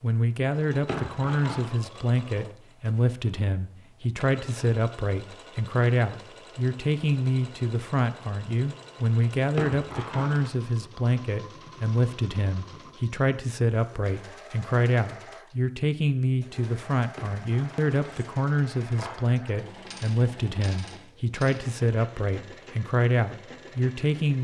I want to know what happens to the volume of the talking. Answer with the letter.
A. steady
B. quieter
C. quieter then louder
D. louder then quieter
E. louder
A.